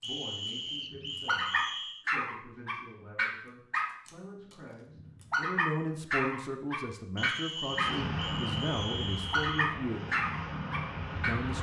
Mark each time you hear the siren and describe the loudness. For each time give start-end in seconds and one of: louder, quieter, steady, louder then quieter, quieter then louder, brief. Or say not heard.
not heard.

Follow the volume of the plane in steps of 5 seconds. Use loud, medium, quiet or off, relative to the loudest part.
off, loud, loud.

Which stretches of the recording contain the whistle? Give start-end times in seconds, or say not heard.
0.0-2.0, 7.2-9.7.